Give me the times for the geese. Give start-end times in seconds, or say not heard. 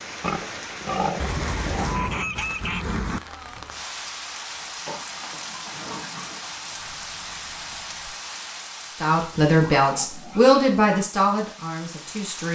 1.2-3.2, 6.7-8.2.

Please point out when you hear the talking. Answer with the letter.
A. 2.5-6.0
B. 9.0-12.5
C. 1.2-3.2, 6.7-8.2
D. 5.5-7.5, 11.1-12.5
B.